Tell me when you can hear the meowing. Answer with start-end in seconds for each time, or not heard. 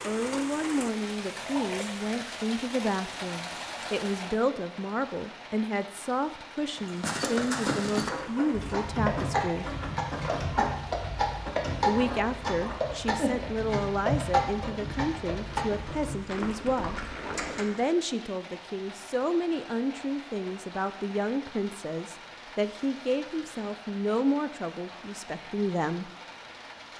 not heard.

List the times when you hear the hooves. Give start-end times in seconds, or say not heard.
6.8-17.8.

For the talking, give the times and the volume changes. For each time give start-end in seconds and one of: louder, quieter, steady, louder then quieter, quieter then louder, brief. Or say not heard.
0.1-9.7 steady
11.8-26.1 steady.